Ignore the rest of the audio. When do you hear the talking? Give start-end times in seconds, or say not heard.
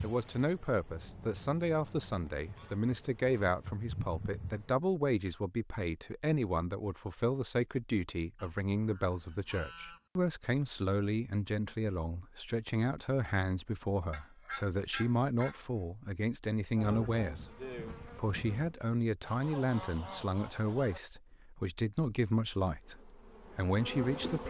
0.0-24.4.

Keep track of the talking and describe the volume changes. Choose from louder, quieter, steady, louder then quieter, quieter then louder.
steady.